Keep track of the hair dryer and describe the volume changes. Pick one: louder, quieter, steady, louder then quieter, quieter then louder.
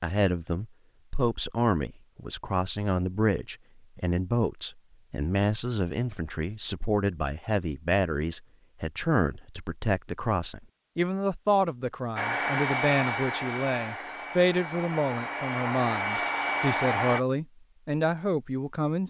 quieter then louder.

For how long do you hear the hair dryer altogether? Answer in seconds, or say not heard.
5 s.